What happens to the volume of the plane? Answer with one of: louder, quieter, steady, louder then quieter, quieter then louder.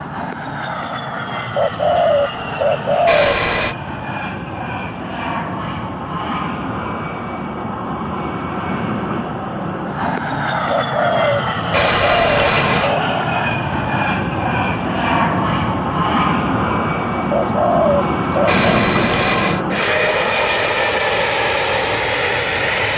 louder.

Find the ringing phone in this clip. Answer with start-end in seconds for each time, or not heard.
3.0-3.8, 11.7-12.9, 18.4-19.6.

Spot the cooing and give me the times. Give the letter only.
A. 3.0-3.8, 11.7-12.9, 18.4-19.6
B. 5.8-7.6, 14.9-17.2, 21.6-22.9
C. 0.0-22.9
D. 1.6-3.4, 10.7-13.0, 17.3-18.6
D.